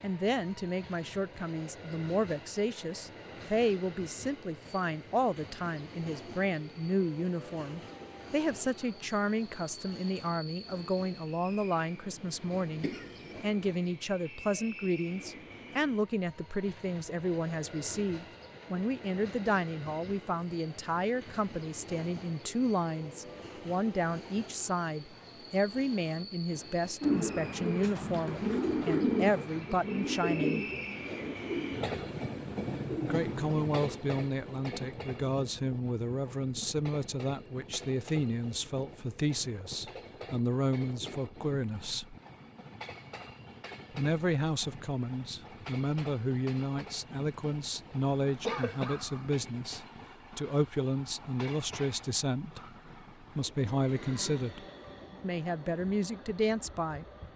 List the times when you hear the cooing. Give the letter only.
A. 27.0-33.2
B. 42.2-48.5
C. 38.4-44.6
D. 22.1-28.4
A.